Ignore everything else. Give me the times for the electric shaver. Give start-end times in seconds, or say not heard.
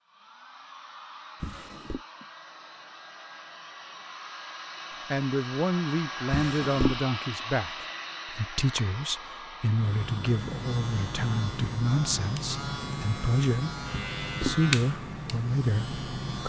9.7-16.4.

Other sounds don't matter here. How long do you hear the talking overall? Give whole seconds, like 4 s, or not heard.
11 s.